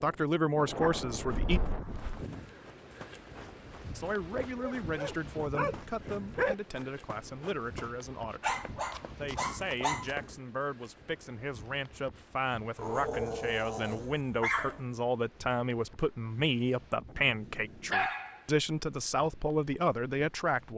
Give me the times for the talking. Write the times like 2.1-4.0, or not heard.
0.0-1.6, 3.9-20.7.